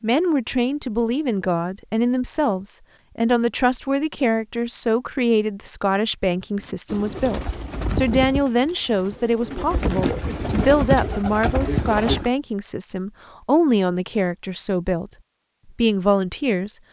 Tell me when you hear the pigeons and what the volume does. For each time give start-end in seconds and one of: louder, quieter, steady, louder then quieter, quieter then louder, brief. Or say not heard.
6.9-12.3 quieter then louder.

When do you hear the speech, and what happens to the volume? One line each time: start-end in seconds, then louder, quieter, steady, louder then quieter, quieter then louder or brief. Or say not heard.
0.0-15.1 steady
15.8-16.8 brief.